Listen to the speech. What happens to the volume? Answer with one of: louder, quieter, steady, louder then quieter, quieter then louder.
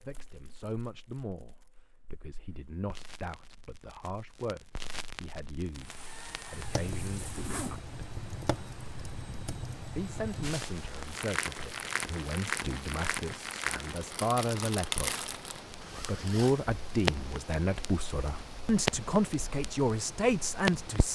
louder.